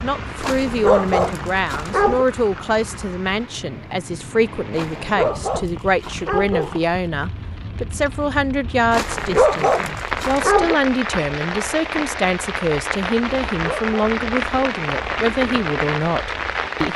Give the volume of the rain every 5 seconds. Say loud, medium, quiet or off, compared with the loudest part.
medium, medium, loud, loud.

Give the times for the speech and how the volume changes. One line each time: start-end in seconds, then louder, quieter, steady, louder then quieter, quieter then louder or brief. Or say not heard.
0.0-16.9 steady.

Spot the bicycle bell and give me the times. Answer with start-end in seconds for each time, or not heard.
not heard.